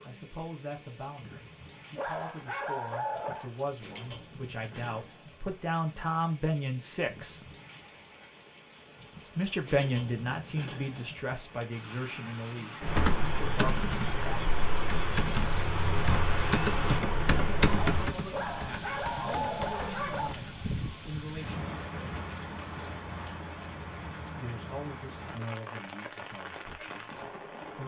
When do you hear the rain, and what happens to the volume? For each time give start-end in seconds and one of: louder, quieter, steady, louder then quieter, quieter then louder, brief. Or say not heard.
0.0-27.8 louder.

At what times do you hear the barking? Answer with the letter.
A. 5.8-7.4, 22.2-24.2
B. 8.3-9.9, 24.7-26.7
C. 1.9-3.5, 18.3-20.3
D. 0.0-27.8
C.